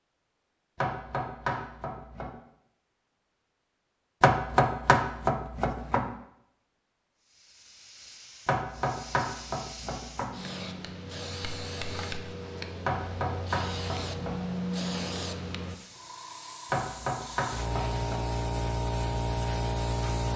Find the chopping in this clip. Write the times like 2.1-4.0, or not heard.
0.8-2.3, 4.2-6.0, 8.4-10.3, 12.8-14.6, 16.7-18.2.